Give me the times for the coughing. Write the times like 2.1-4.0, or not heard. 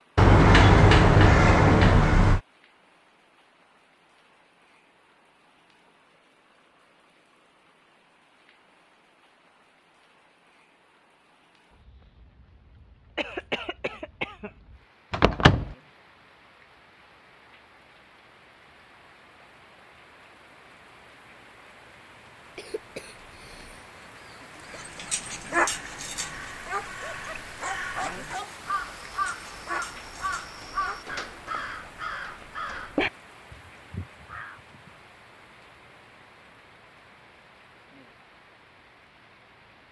13.2-14.5, 22.6-23.9.